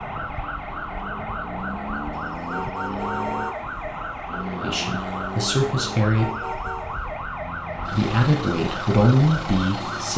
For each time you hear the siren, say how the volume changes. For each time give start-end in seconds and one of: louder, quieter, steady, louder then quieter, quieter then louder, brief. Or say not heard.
0.0-10.1 steady.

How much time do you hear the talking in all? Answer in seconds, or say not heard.
4 s.